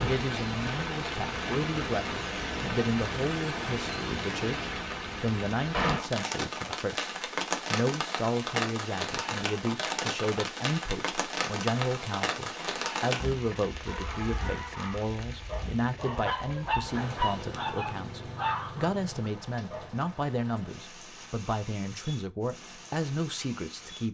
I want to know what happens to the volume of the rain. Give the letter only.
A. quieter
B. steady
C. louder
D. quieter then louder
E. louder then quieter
A.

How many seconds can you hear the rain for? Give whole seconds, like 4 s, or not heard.
24 s.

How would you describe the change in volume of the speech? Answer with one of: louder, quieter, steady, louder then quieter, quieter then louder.
steady.